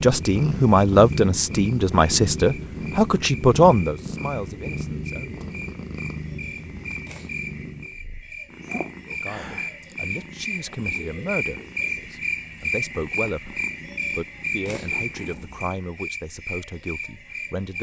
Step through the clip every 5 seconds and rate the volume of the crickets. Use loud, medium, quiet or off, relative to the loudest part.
quiet, medium, loud, medium.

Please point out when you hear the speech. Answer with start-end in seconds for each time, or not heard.
0.0-5.3, 9.1-17.7.